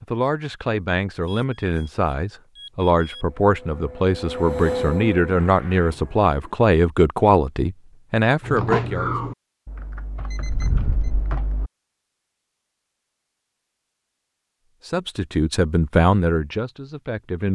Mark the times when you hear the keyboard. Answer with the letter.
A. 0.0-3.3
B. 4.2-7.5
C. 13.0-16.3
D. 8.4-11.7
D.